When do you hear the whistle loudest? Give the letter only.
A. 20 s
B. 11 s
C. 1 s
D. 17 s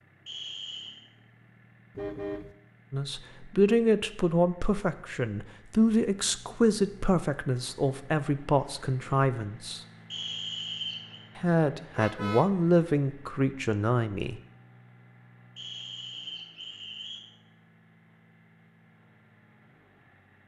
B.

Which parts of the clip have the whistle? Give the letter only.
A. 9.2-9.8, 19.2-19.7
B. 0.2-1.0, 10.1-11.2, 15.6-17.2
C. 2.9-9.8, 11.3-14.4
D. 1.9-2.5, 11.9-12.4
B.